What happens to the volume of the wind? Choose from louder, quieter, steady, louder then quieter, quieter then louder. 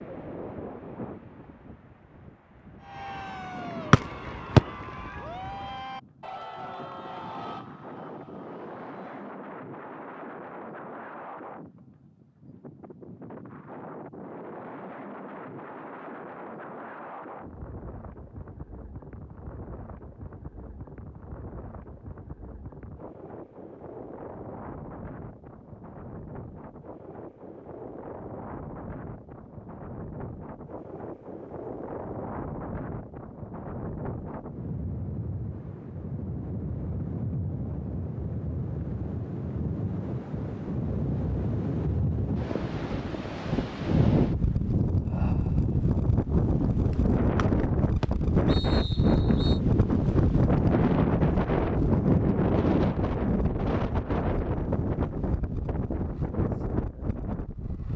louder.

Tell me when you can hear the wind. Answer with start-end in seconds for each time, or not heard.
0.0-57.9.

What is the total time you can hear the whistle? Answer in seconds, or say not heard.
3 s.